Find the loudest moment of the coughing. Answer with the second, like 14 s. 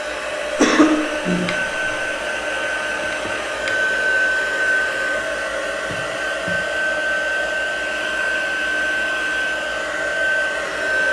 1 s.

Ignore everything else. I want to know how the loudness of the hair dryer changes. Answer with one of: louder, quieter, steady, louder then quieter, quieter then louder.
steady.